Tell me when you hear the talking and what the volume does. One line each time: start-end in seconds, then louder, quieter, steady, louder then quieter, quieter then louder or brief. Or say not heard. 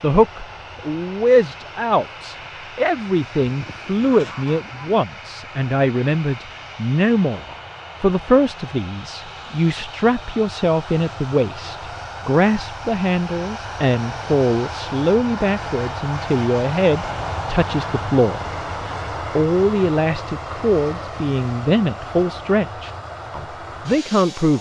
0.0-24.5 steady.